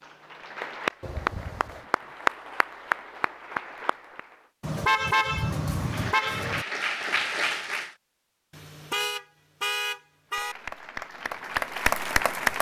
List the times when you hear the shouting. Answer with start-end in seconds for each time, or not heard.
not heard.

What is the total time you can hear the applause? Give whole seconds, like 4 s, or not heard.
9 s.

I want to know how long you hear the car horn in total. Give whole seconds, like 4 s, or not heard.
5 s.